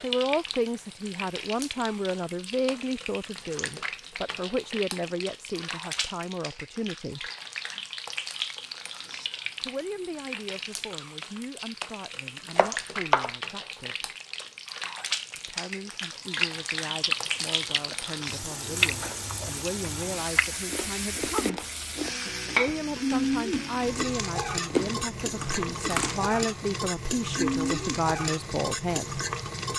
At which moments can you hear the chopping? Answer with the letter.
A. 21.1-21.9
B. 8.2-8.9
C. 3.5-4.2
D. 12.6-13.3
D.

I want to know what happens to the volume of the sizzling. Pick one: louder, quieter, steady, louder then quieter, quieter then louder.
louder.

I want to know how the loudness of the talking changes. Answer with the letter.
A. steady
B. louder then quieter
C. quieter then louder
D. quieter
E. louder
C.